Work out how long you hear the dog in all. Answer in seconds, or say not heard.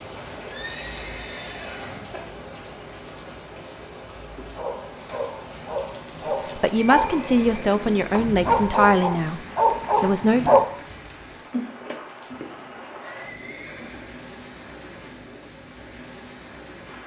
6 s.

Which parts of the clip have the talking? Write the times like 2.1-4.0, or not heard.
6.5-9.4, 10.0-10.6.